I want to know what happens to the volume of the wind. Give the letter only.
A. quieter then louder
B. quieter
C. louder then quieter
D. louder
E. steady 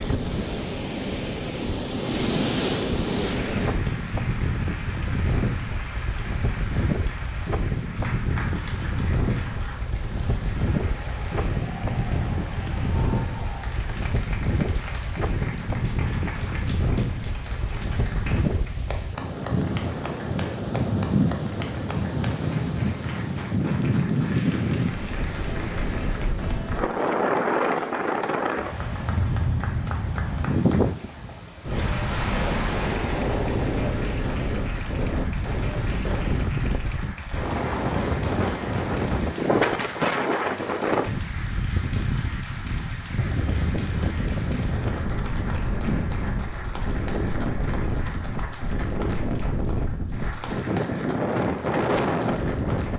E.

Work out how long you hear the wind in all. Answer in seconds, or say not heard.
53 s.